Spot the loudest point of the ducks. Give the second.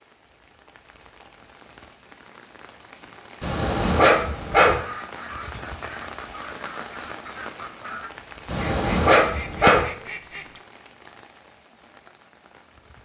10 s.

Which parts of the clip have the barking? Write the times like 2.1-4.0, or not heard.
3.4-4.8, 8.4-9.8.